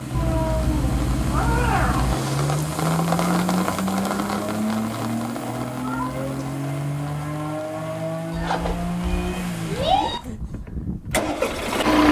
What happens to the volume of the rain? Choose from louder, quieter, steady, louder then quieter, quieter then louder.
louder then quieter.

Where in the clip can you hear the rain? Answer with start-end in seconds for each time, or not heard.
0.0-10.4.